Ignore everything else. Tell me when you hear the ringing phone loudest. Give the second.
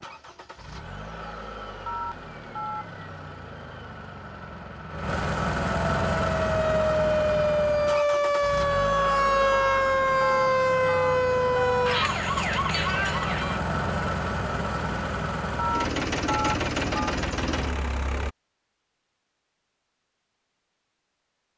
16 s.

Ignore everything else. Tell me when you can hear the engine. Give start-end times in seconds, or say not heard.
0.0-18.4.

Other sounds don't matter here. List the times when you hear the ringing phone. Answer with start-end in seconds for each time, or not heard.
1.9-2.9, 9.5-11.8, 15.6-17.1.